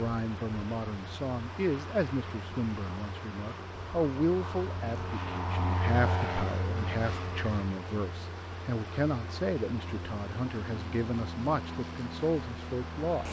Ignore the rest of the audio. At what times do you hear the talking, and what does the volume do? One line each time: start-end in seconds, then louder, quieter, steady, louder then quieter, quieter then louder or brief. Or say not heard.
0.0-13.2 steady.